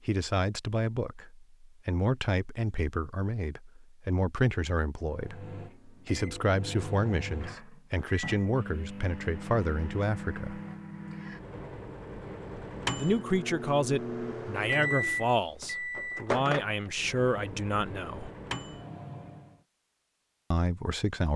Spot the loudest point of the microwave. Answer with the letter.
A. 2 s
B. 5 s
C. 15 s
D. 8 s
C.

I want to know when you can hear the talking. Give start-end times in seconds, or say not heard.
0.1-10.6, 12.9-18.3, 20.5-21.3.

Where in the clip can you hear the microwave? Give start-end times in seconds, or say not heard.
5.0-19.6.